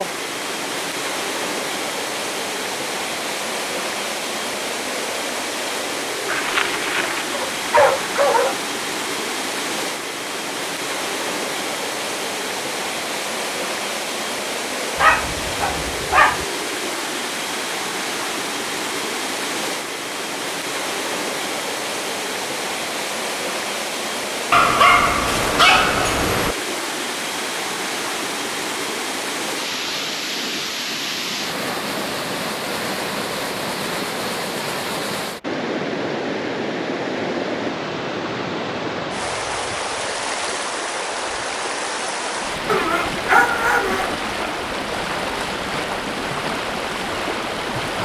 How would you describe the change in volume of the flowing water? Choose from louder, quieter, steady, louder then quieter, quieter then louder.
steady.